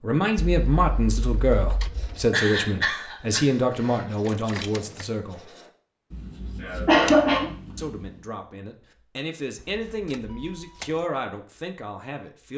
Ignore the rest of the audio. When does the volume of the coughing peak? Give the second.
7 s.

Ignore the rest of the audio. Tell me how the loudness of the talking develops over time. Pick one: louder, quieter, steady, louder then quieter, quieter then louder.
quieter.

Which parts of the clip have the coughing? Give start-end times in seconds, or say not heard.
2.3-4.0, 6.6-7.5.